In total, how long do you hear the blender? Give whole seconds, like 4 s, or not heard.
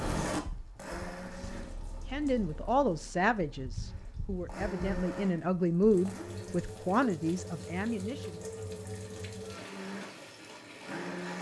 6 s.